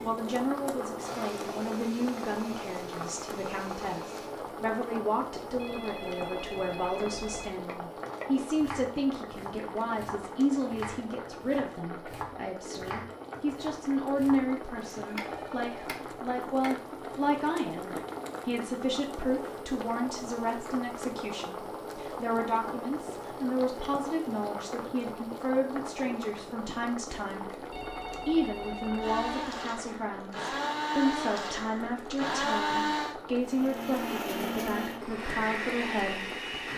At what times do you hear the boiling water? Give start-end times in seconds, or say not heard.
0.0-36.7.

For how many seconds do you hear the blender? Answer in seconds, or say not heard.
12 s.